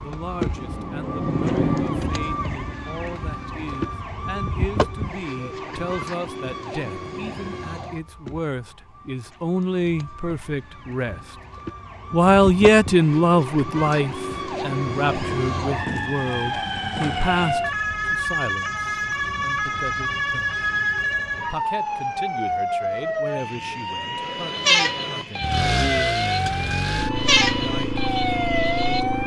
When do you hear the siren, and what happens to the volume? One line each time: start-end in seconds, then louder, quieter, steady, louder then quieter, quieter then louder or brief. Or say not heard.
0.0-29.2 quieter then louder.